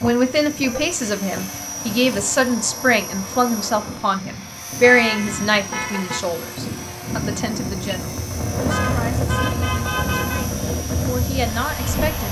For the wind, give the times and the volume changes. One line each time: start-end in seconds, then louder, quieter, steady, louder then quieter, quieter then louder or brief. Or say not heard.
0.0-12.2 louder.